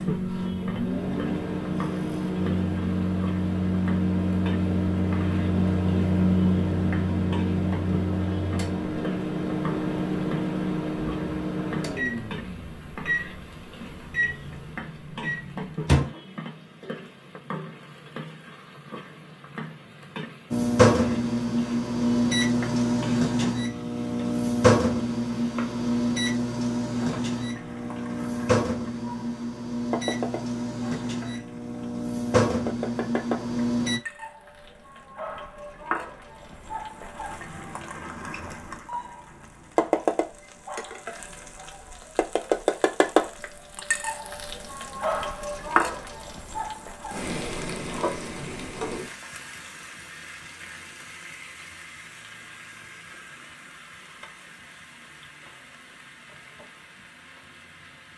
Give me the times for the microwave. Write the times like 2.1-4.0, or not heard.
0.0-16.1, 20.5-34.0.